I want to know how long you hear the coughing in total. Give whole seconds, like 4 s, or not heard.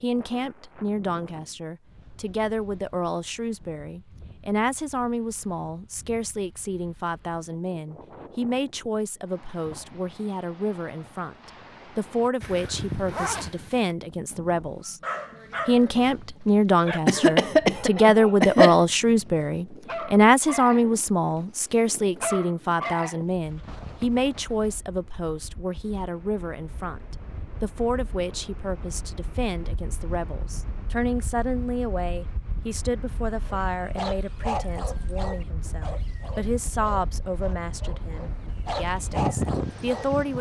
2 s.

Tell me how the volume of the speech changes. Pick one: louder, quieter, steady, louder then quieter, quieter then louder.
louder then quieter.